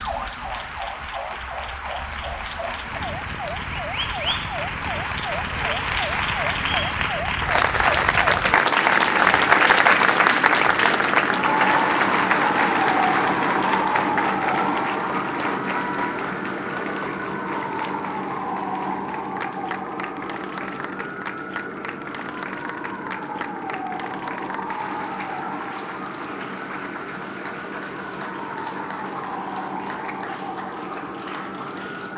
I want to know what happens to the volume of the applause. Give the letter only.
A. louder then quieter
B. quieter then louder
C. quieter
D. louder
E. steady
A.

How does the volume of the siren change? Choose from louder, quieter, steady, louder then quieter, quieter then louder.
louder then quieter.